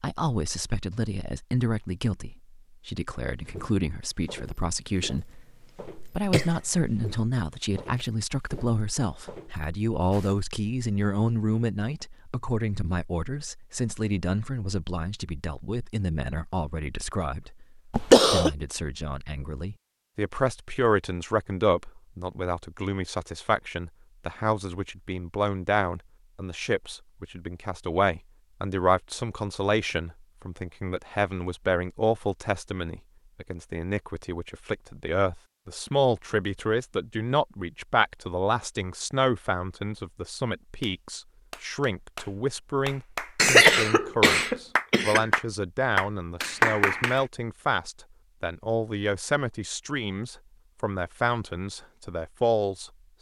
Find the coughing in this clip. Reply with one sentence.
You can hear the coughing from 5.2 to 6.8 s, from 17.9 to 18.5 s and from 43.4 to 45.2 s.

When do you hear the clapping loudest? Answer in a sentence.
The loudest moment of the clapping is at 47 seconds.